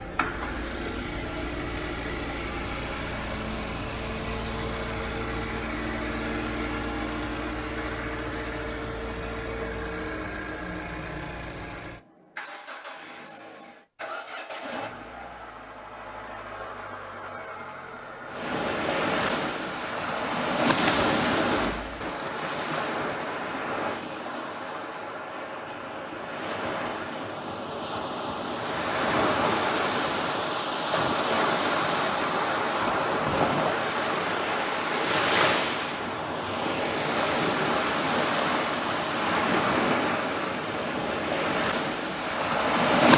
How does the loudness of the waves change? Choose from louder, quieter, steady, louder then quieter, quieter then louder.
quieter then louder.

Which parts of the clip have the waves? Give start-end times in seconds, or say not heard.
18.3-43.1.